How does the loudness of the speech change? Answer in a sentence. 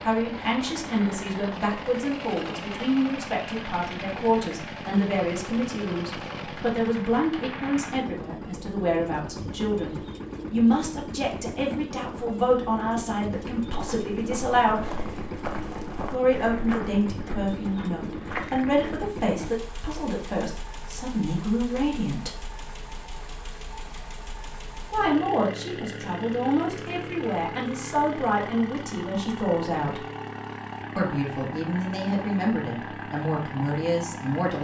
The loudness of the speech stays about the same.